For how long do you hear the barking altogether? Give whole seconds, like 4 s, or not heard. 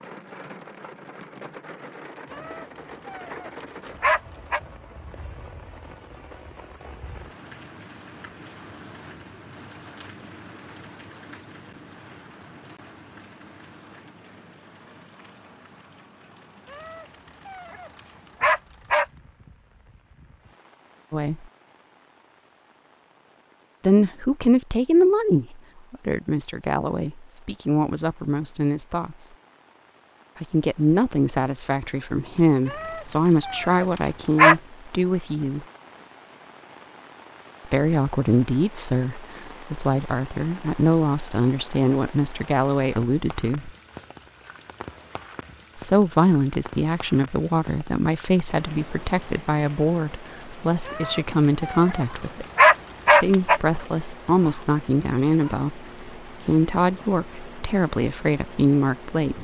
9 s.